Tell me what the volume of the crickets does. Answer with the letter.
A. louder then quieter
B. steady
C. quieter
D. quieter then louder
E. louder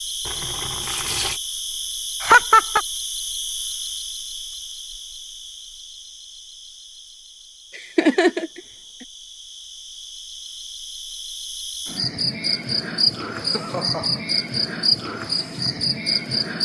D.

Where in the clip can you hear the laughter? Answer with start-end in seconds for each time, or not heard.
2.2-2.8, 7.8-8.6, 13.3-14.2.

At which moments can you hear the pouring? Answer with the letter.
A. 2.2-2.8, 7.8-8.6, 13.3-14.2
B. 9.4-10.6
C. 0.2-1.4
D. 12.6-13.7
C.